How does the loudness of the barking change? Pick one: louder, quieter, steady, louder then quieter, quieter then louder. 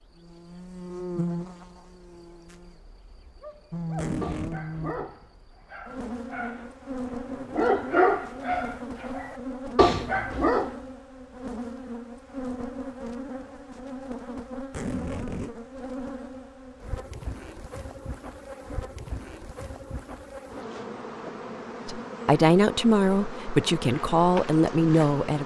quieter then louder.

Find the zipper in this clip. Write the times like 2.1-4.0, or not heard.
4.0-4.7, 14.7-15.5.